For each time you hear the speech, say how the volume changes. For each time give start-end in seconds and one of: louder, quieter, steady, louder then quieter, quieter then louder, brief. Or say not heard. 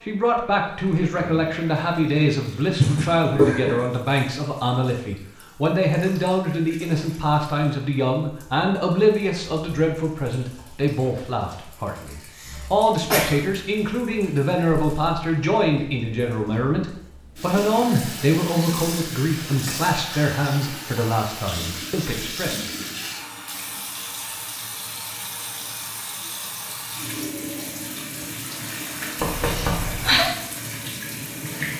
0.0-22.7 steady.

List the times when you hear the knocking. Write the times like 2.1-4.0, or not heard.
29.1-30.2.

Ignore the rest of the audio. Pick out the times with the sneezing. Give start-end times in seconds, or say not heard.
2.8-3.8, 12.4-13.3, 29.4-30.3.